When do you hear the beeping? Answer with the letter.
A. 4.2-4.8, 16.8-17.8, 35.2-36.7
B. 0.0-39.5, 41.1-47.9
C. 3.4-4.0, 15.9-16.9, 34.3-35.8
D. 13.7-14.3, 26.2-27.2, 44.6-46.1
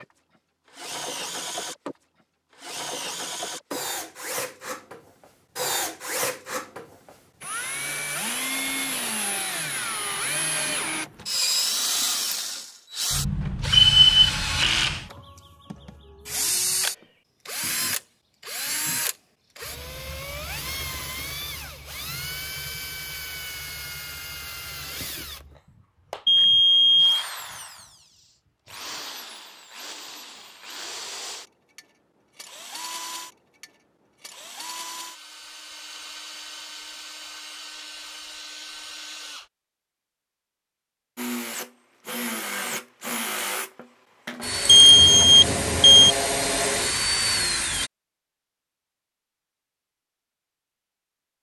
D.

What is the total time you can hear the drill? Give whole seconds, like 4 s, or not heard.
46 s.